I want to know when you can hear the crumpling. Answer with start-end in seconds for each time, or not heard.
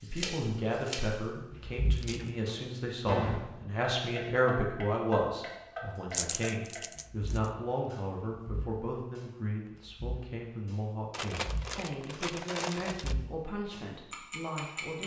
1.9-2.5, 6.1-7.4, 11.1-13.2.